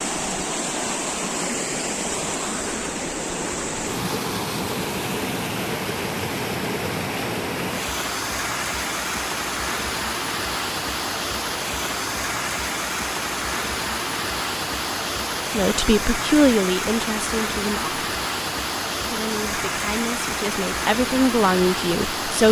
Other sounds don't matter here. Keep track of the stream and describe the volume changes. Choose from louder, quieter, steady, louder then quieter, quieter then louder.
steady.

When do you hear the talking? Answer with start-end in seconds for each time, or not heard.
15.5-18.0, 19.1-22.4.